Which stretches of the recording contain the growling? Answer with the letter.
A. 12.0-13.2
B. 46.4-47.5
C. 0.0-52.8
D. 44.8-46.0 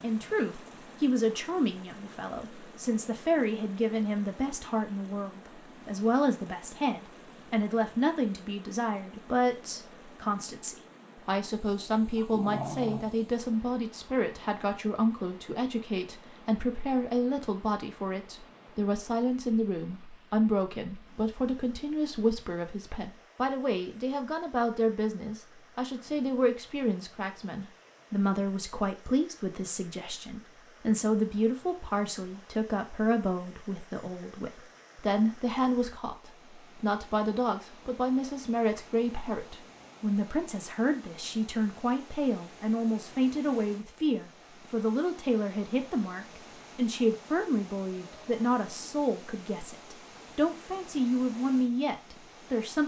A.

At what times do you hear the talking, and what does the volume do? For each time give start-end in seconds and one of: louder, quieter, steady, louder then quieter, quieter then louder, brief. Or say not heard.
0.0-52.8 steady.